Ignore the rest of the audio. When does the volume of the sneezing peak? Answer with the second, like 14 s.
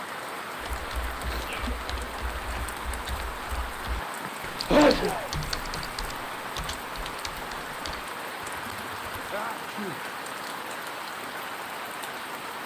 5 s.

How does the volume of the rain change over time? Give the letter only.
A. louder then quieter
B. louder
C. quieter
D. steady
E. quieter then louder
D.